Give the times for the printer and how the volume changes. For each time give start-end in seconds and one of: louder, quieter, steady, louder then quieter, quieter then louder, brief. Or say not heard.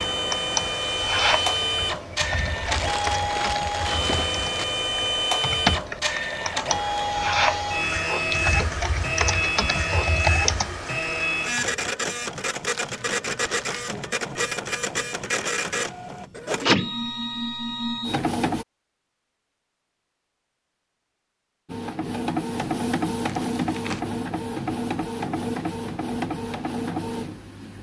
0.0-18.6 steady
21.6-27.7 steady.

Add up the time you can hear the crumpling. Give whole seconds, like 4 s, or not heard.
4 s.